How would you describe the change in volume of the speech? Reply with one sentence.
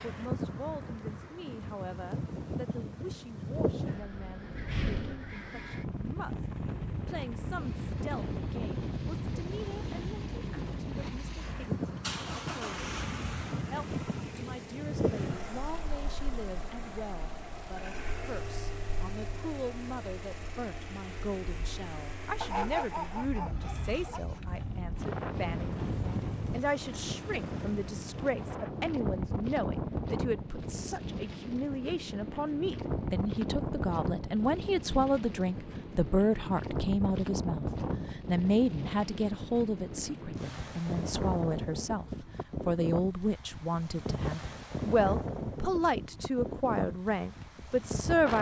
The volume of the speech goes up.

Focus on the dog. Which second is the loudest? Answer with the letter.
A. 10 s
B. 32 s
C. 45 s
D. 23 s
D.